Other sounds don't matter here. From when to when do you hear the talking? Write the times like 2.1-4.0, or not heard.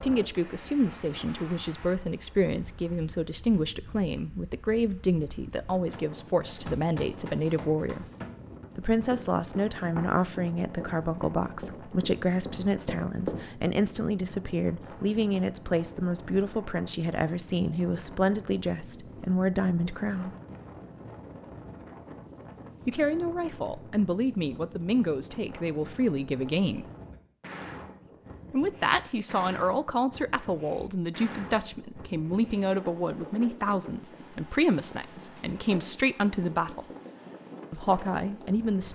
0.0-8.1, 8.8-20.3, 22.9-26.9, 28.5-36.9, 37.7-38.9.